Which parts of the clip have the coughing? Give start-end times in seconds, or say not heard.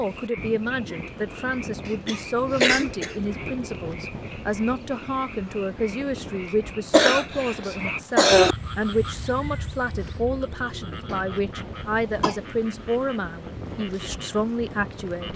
1.9-3.1, 6.9-8.6, 11.1-12.4.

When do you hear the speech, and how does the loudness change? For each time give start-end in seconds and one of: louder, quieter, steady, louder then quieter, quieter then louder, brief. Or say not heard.
0.0-15.3 steady.